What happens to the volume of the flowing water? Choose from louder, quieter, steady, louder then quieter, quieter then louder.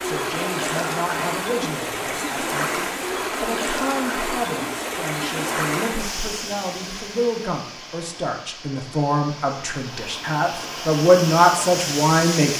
quieter then louder.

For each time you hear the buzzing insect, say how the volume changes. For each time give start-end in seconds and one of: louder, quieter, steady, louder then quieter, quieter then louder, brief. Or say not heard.
not heard.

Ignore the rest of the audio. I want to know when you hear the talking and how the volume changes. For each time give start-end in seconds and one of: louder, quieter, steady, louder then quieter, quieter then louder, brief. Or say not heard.
0.0-12.5 louder.